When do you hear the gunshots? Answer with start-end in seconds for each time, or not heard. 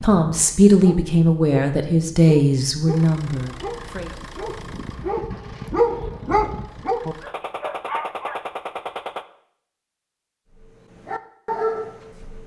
7.2-9.2.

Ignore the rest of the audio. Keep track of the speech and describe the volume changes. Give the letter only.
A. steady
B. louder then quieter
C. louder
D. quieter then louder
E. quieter
E.